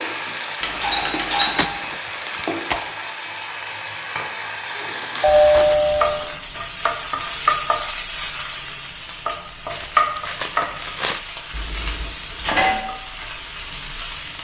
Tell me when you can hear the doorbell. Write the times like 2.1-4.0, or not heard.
0.6-1.7, 5.2-6.2, 11.5-12.8.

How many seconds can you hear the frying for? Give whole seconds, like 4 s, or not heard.
14 s.